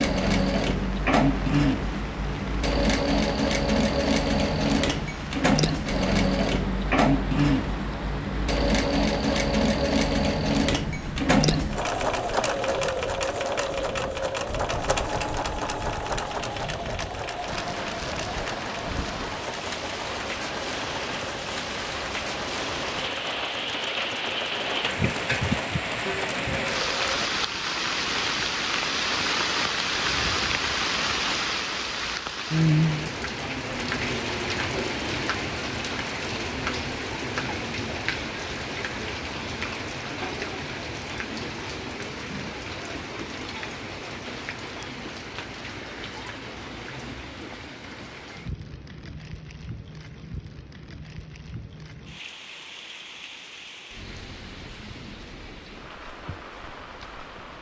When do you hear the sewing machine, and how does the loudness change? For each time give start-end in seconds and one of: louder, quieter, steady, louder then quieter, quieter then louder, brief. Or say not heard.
0.0-27.3 quieter.